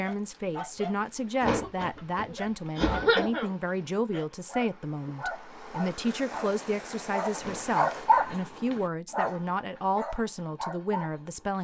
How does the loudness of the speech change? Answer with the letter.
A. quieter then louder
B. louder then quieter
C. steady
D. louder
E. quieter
C.